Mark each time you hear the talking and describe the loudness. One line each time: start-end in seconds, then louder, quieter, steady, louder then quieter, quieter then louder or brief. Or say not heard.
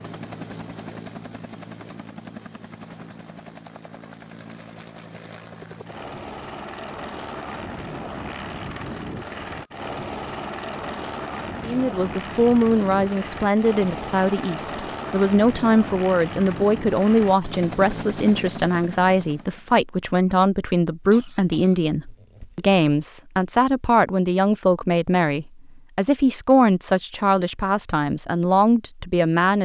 11.6-29.5 steady.